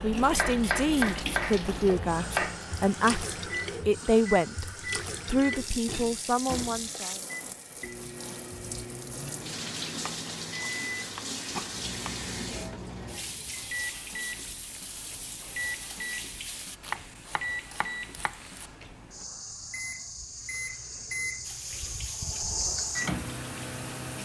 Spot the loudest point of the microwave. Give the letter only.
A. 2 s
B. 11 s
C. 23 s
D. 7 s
C.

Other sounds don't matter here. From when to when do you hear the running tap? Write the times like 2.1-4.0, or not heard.
0.0-16.8, 21.4-24.1.